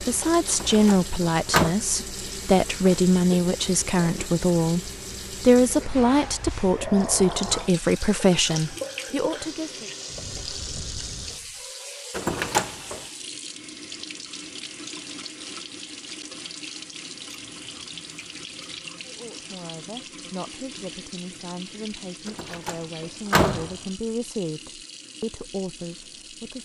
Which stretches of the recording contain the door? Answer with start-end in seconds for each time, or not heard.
0.5-1.8, 12.1-13.0, 22.2-23.8.